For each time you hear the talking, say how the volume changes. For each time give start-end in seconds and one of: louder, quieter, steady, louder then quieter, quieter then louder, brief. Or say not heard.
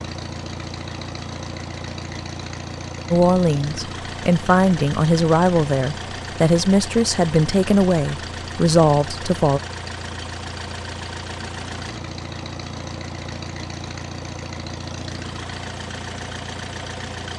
3.1-9.6 steady.